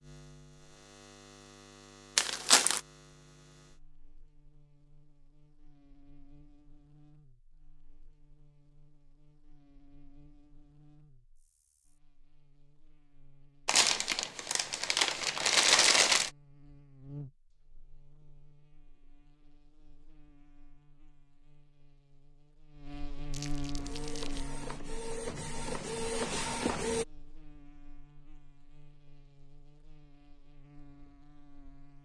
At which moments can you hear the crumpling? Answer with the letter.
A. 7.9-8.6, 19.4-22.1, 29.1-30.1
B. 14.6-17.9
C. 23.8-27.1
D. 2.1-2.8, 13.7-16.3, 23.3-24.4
D.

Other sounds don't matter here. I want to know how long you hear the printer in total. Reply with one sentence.
The printer can be heard for 3 seconds in total.